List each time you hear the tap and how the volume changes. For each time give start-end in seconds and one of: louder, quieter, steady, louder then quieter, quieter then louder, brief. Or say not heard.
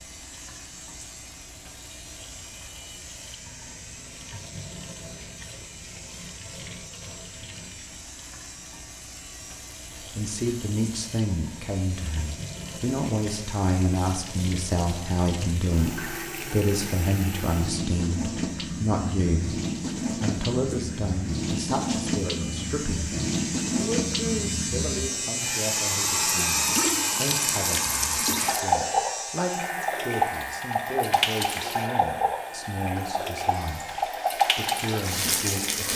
0.0-35.9 louder.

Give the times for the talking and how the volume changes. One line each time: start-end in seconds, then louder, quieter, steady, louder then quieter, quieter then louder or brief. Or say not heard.
10.0-35.9 quieter.